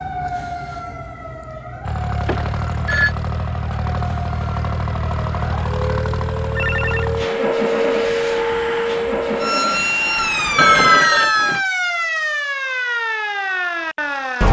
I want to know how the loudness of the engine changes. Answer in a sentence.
The loudness of the engine stays about the same.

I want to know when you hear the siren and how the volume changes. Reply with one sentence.
You can hear the siren from 0.0 to 14.4 s, getting louder.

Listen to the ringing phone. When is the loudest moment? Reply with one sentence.
The loudest moment of the ringing phone is at 11 seconds.